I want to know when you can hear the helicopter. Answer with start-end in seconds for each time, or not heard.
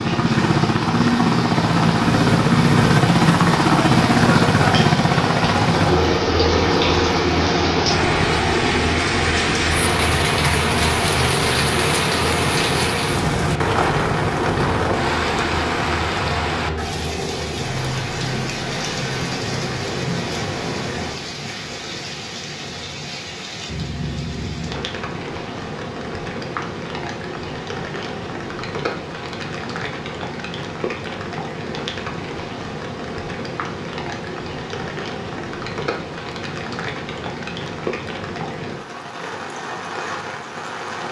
0.0-21.2.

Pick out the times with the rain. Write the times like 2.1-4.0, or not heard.
0.0-41.0.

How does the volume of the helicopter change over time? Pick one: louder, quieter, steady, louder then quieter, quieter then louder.
quieter.